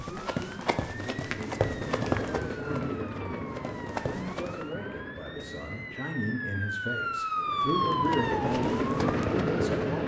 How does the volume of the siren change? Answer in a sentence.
The loudness of the siren goes up.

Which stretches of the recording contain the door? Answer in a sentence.
The door can't be heard in this clip.